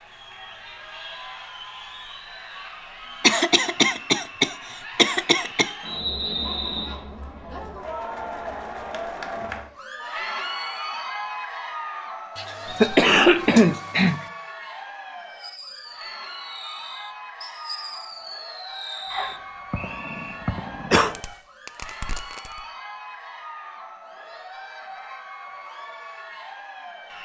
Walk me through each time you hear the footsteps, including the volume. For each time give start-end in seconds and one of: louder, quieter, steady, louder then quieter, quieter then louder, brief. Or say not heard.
not heard.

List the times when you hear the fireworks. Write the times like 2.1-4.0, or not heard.
15.3-22.6.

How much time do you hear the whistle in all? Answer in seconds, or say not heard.
3 s.